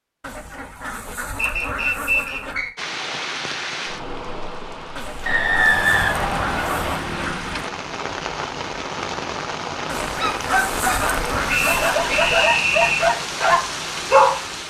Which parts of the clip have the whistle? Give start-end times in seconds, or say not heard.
1.4-2.7, 5.2-7.0, 11.4-13.1.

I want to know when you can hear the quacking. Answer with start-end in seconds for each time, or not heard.
0.2-2.7, 5.0-7.5, 9.8-12.4.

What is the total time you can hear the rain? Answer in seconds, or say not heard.
12 s.